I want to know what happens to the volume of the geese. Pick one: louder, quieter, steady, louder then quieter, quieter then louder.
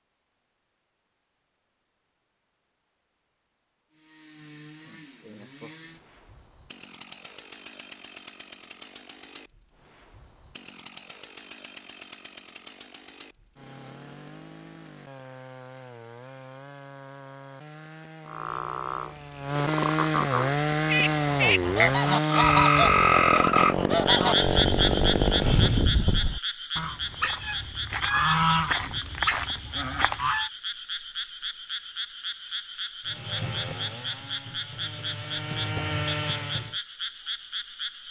steady.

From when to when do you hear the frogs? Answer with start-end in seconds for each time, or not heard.
18.2-38.0.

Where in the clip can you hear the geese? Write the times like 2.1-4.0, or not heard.
21.2-30.4.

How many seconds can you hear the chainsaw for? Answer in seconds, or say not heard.
26 s.